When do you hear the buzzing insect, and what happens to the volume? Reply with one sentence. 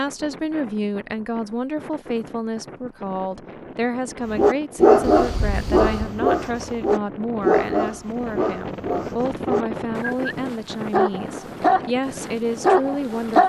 You can't hear the buzzing insect here.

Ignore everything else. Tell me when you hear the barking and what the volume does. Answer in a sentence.
You can hear the barking from 4.3 to 13.4 s, getting quieter then louder.